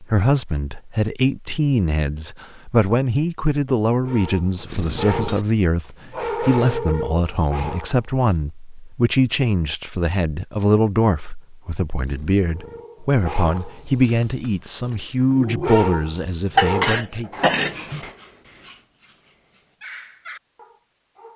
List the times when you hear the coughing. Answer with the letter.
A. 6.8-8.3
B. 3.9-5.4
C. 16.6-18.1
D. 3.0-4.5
C.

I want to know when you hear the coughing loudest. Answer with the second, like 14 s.
17 s.